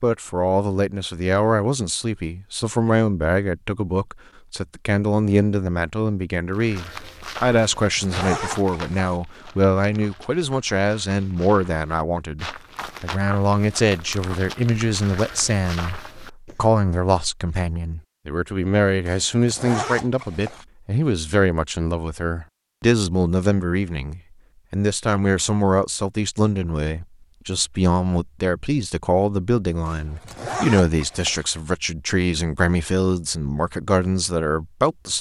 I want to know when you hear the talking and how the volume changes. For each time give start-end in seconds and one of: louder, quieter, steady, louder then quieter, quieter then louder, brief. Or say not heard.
0.0-35.1 steady.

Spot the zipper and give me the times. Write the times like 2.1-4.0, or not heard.
7.8-9.2, 19.1-20.6, 29.9-31.4.